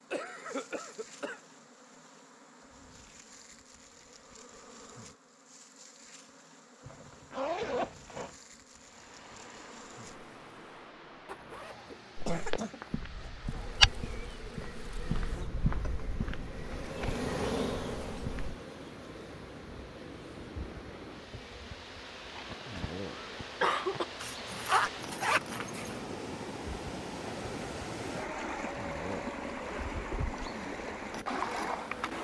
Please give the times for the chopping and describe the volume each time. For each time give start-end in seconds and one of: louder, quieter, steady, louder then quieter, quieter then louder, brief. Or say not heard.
not heard.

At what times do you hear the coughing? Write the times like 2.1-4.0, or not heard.
0.1-1.4, 11.9-13.3, 22.4-24.1.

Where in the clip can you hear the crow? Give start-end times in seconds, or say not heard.
not heard.